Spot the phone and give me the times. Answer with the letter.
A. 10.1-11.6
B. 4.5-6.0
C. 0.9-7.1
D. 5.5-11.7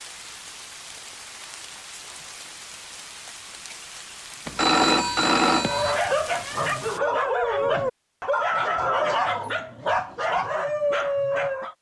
B.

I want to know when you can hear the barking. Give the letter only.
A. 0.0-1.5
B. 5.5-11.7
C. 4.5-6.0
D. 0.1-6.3
B.